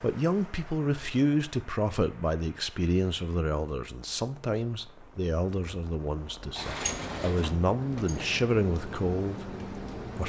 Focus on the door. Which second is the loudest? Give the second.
7 s.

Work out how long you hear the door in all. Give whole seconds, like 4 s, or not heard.
2 s.